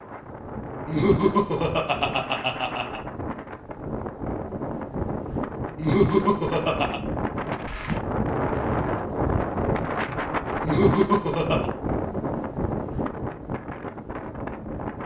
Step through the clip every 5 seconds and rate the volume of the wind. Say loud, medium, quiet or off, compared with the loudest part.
medium, loud, loud.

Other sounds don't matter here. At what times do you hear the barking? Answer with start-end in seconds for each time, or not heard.
not heard.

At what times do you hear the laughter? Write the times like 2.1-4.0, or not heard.
0.8-3.0, 5.8-7.0, 10.6-11.7.